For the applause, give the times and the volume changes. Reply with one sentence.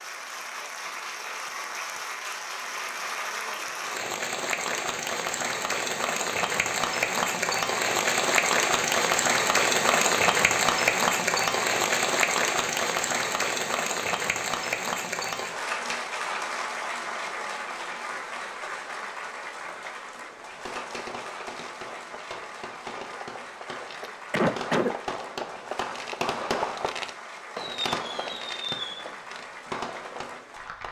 The applause can be heard from 0.0 to 30.8 s, getting louder then quieter.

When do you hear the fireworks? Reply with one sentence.
The fireworks can be heard from 20.4 to 30.4 s.